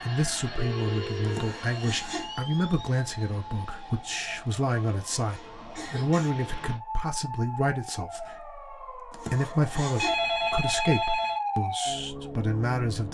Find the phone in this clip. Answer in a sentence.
The phone can be heard from 0.6 to 1.4 s and from 9.9 to 11.4 s.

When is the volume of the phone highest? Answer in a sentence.
The volume of the phone peaks at 10 seconds.